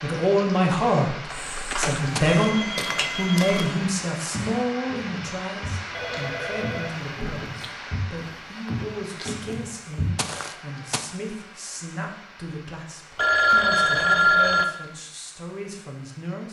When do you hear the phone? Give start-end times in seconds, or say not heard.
1.3-3.7, 5.9-7.7, 13.2-14.7.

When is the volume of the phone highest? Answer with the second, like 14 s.
14 s.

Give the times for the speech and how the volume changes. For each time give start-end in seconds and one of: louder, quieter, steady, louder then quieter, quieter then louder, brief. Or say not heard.
0.0-16.4 quieter.